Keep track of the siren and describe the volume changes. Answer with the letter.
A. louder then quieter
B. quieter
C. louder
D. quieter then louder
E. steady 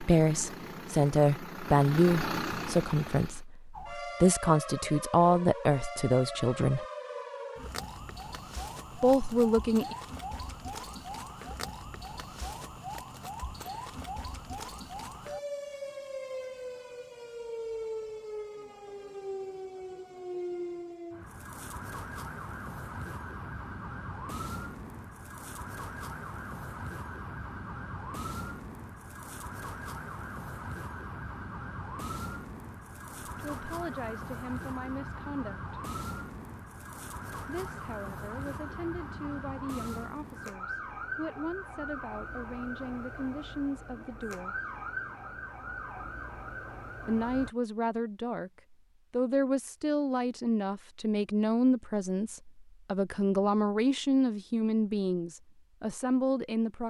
E.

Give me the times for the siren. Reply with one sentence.
The siren can be heard from 3.7 to 47.5 s.